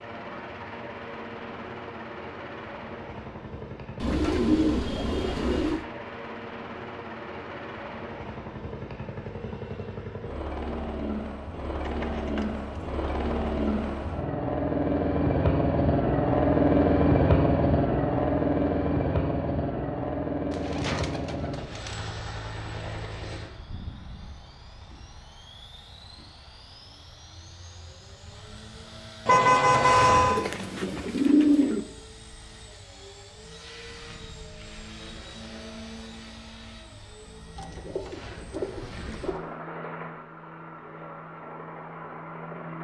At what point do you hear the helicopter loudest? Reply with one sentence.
The loudest moment of the helicopter is at 17 seconds.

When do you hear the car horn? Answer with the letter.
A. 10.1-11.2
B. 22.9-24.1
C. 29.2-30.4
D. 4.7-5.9
C.